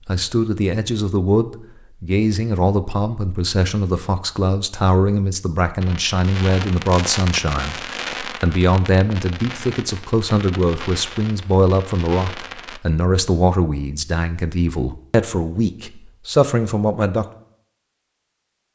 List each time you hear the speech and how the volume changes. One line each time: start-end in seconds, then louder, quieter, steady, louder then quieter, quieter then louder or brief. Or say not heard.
0.1-17.2 steady.